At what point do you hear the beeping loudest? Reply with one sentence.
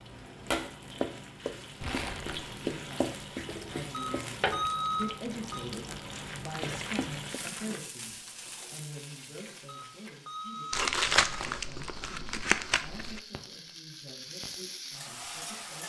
The volume of the beeping peaks at 5 seconds.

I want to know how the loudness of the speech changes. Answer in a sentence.
The loudness of the speech goes down.